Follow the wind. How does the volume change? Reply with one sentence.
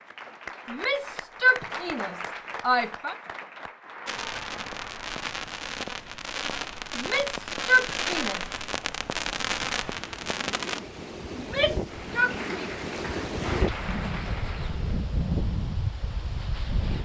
The loudness of the wind goes up.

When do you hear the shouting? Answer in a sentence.
The shouting can be heard from 0.7 to 3.1 s, from 7.0 to 8.6 s and from 11.3 to 12.7 s.